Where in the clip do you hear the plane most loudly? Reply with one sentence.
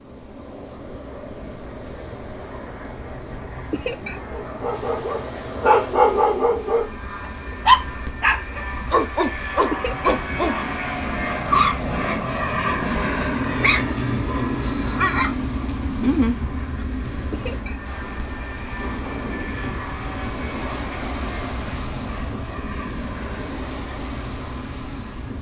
The loudest moment of the plane is at 13 seconds.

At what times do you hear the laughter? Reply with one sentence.
You can hear the laughter from 3.7 to 4.2 s, from 9.7 to 10.1 s and from 17.3 to 17.8 s.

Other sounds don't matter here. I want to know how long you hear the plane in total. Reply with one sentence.
You can hear the plane for 25 seconds altogether.